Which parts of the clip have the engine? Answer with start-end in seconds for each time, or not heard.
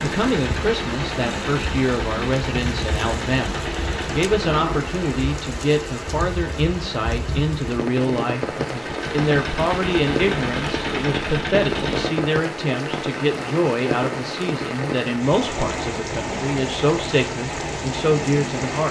0.0-4.6, 8.7-12.1.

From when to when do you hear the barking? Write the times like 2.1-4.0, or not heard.
not heard.